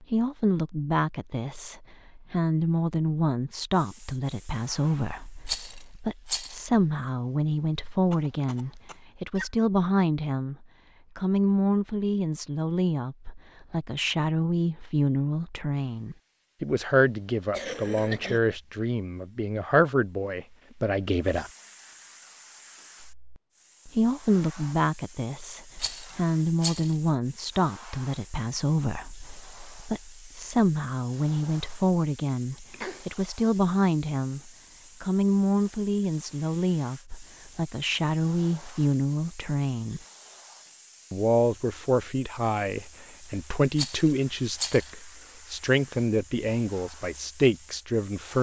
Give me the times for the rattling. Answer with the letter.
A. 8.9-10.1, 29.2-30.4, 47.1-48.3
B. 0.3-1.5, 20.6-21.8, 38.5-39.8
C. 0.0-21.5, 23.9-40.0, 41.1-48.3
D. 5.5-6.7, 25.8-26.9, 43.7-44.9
D.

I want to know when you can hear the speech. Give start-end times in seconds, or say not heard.
0.0-21.5, 23.9-40.0, 41.1-48.3.